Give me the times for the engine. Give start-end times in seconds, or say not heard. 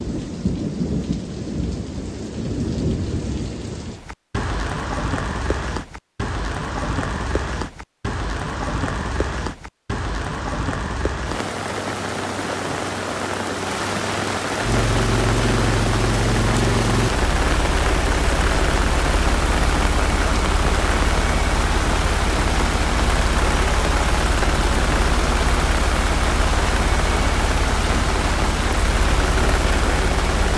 14.6-30.5.